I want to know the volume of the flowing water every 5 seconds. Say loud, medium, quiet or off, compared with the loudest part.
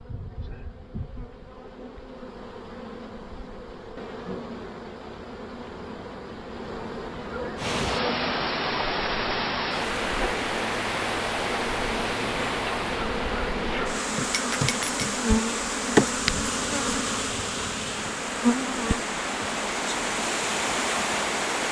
off, loud, loud, medium, loud.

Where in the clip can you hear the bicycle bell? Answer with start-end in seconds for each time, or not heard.
14.3-15.1.